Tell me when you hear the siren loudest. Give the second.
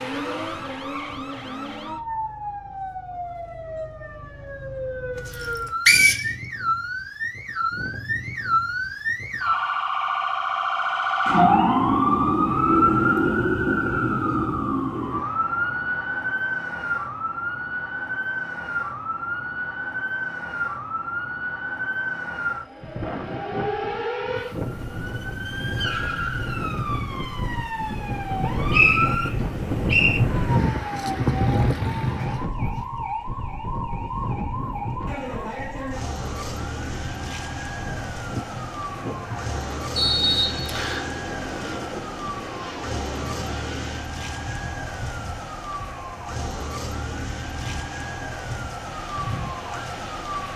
12 s.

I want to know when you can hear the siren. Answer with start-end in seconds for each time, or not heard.
0.0-50.5.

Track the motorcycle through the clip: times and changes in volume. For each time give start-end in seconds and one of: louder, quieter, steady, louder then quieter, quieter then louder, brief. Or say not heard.
not heard.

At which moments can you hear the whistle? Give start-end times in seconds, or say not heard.
5.4-6.2, 28.3-30.2, 40.0-41.1.